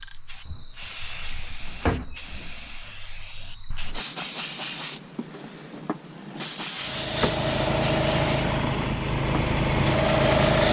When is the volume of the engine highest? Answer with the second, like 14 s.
10 s.